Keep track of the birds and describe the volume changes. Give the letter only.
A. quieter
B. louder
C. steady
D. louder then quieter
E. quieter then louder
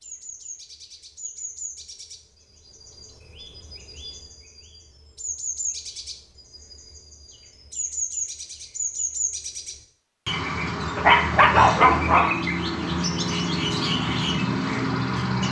B.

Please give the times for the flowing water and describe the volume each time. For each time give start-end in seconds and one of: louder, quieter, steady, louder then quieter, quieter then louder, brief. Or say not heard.
not heard.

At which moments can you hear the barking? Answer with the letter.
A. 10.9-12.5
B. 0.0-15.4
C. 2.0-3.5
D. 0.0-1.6
A.